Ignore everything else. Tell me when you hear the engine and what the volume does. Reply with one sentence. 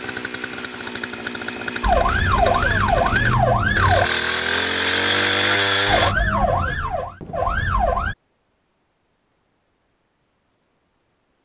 You can hear the engine from 0.0 to 6.2 s, getting louder.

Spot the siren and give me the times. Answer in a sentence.
The siren can be heard from 1.8 to 4.1 s and from 5.8 to 8.2 s.